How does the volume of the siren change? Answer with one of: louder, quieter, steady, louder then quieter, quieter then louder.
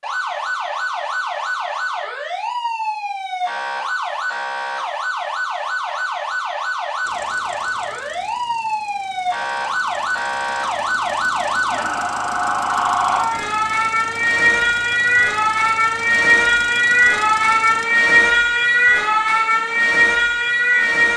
louder.